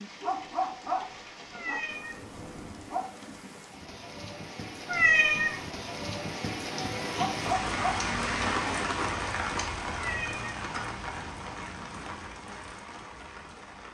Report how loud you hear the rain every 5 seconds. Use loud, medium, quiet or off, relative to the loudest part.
quiet, loud, medium.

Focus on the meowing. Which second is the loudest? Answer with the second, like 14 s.
5 s.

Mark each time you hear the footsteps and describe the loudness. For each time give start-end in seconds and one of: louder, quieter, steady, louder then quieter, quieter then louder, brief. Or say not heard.
not heard.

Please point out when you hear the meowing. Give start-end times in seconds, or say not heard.
1.5-2.2, 4.8-5.5, 9.9-10.6.